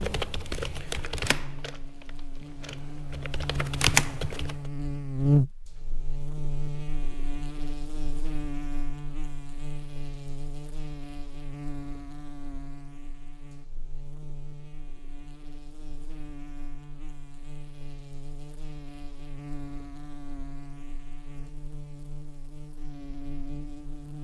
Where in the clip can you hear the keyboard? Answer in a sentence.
The keyboard can be heard from 0.0 to 4.5 s.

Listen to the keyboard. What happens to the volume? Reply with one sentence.
The loudness of the keyboard goes down, then up.